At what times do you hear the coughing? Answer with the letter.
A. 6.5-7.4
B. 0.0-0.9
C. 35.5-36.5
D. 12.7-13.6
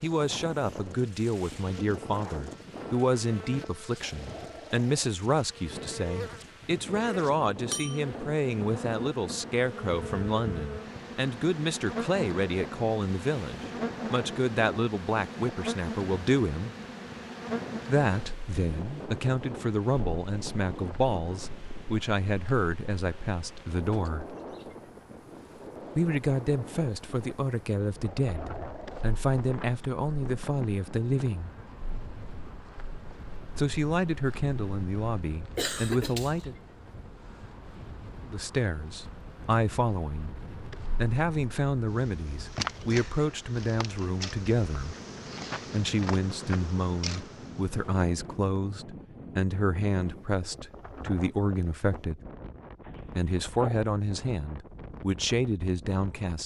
C.